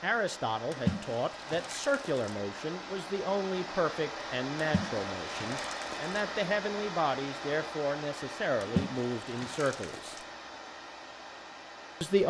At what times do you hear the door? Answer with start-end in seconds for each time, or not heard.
not heard.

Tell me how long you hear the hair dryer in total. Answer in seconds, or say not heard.
12 s.